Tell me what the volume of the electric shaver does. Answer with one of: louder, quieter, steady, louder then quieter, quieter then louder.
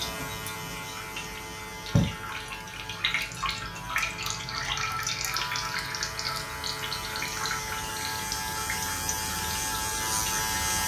louder.